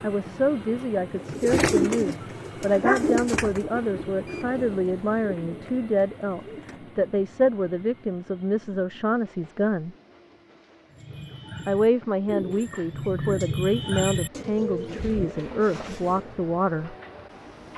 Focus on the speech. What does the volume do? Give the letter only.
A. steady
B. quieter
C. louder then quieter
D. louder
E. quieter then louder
A.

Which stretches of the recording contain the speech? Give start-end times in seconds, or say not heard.
0.0-9.9, 11.7-16.9.